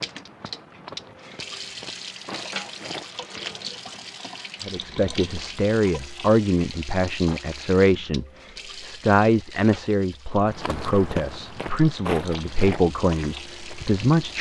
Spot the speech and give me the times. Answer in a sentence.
The speech can be heard from 4.7 to 14.3 s.